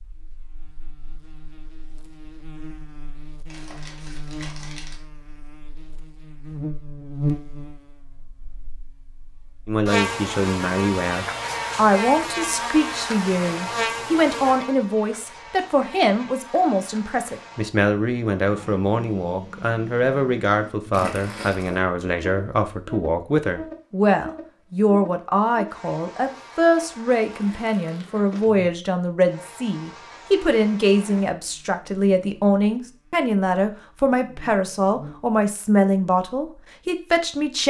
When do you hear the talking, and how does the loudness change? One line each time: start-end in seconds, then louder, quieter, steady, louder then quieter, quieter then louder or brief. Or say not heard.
9.7-37.6 steady.